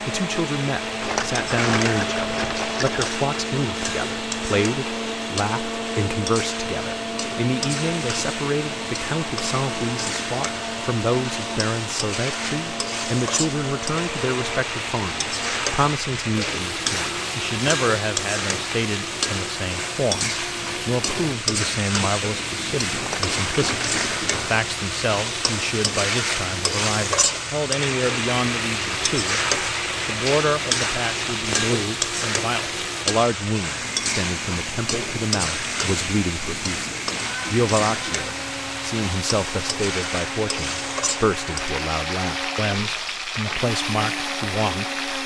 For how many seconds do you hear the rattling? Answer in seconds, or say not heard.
4 s.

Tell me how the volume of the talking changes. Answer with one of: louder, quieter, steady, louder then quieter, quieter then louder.
steady.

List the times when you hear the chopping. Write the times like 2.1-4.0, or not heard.
not heard.